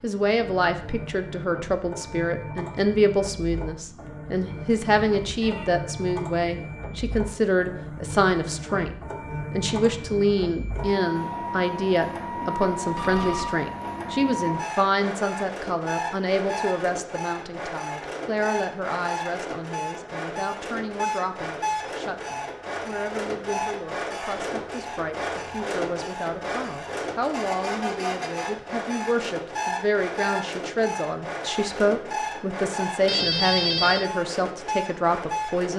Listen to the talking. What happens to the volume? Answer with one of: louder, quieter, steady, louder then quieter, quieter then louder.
quieter then louder.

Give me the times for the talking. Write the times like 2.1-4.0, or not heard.
0.0-35.7.